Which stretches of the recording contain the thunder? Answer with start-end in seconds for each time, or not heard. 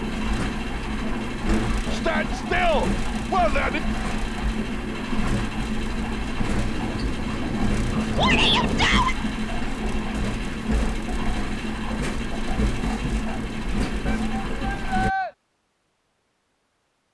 6.5-8.9.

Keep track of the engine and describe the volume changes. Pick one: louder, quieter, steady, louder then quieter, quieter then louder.
steady.